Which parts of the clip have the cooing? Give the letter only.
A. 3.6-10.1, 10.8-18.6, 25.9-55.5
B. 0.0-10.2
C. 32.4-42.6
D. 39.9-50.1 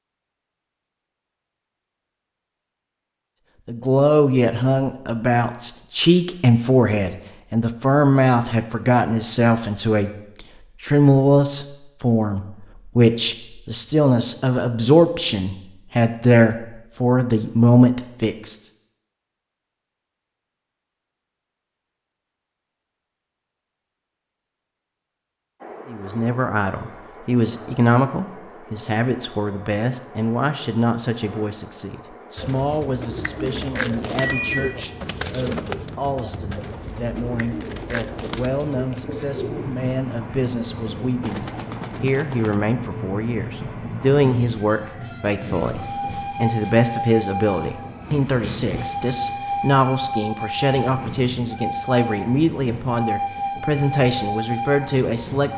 C.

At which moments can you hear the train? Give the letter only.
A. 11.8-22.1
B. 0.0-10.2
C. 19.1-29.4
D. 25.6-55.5
D.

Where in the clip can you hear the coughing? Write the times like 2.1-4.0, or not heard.
not heard.